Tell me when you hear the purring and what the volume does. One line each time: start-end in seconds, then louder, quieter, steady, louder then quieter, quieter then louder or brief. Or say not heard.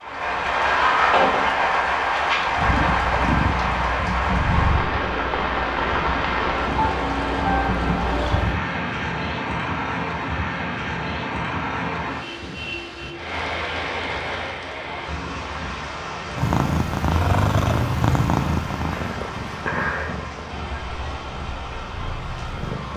2.5-8.7 quieter then louder
16.4-22.9 quieter.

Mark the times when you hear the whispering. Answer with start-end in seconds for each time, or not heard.
not heard.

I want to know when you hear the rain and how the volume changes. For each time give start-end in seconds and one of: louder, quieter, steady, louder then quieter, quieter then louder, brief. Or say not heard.
0.0-22.9 quieter.